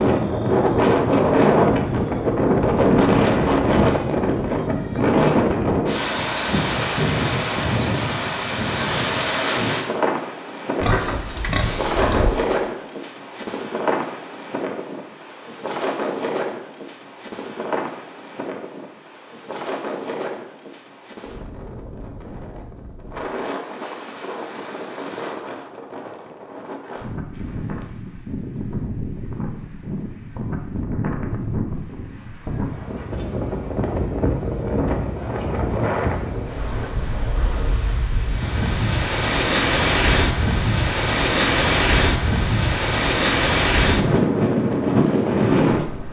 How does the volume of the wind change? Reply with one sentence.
The volume of the wind goes down, then up.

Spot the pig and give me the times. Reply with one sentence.
The pig can be heard from 10.8 to 12.3 s.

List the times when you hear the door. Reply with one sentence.
You can't hear the door here.